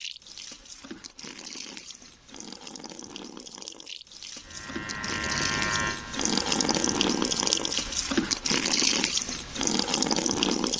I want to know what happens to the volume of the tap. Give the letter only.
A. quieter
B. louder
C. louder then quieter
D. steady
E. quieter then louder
B.